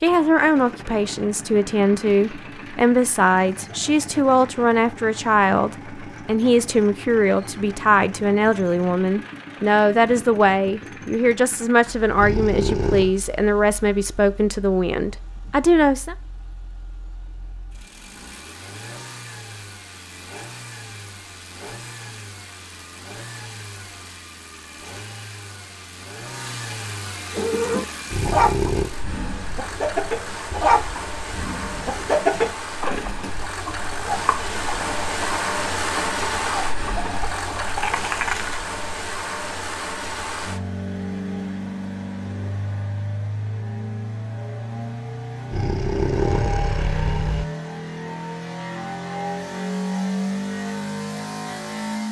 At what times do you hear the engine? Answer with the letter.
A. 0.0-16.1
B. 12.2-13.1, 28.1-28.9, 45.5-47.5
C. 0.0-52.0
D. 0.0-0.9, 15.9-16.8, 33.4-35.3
C.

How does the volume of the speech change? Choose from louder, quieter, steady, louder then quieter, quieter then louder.
steady.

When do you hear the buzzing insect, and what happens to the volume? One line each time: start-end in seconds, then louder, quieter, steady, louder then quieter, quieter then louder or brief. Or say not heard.
not heard.